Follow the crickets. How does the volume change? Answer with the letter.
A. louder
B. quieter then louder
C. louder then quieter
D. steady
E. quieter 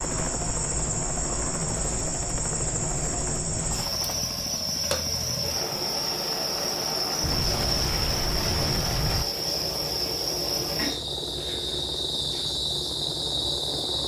D.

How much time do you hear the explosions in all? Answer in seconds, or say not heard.
2 s.